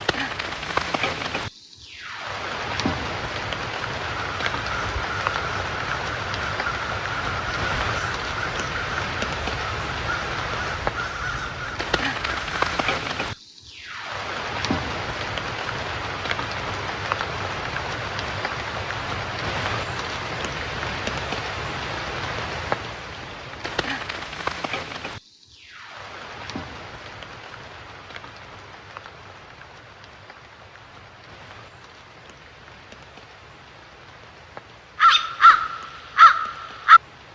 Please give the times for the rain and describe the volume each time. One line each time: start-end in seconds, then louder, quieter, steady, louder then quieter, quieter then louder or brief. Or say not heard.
0.0-37.3 quieter.